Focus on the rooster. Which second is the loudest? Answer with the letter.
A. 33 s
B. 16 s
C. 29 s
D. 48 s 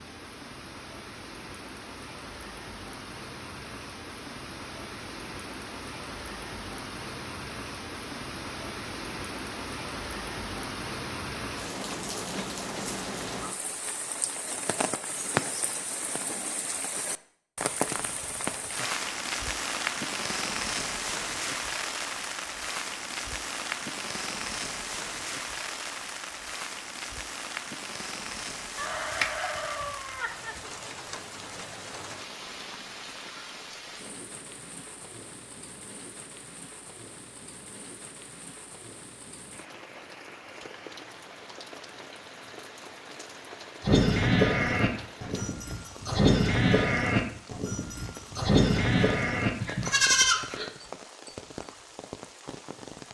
C.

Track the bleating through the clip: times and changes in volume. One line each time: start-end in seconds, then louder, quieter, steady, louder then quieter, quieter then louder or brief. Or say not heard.
43.8-50.7 steady.